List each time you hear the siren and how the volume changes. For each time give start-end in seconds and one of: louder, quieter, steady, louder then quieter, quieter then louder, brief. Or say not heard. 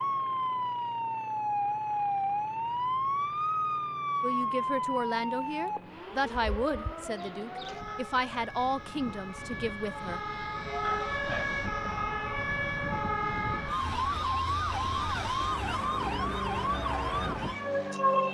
0.0-18.2 quieter then louder.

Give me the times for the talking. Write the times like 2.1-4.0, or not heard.
4.2-10.2.